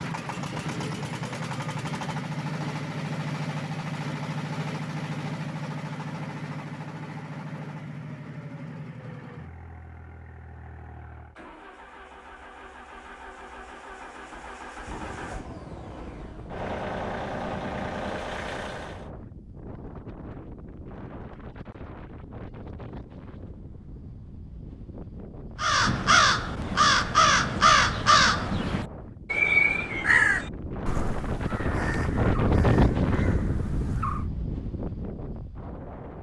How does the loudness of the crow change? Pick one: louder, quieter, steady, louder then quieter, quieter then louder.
quieter.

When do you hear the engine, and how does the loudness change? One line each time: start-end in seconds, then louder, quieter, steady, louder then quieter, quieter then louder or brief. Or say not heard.
0.0-19.1 quieter then louder.